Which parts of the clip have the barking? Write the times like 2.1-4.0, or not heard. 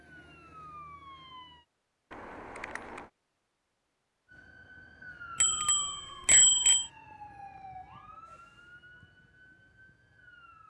not heard.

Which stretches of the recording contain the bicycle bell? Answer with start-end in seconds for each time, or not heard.
2.1-3.1, 5.4-6.9.